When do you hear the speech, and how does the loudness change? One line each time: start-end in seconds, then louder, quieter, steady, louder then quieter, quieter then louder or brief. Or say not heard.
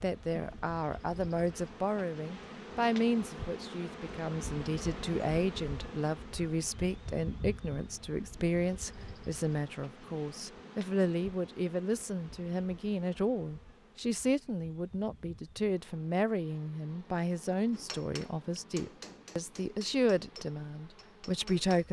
0.0-21.8 steady.